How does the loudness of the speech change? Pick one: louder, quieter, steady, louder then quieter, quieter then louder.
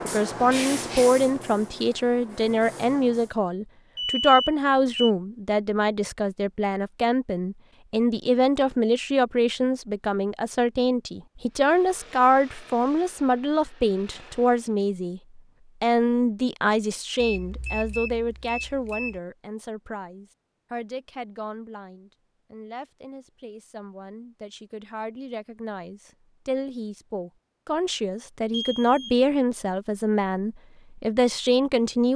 quieter then louder.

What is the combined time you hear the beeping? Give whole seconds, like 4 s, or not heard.
4 s.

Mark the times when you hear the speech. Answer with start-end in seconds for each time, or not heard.
0.0-32.1.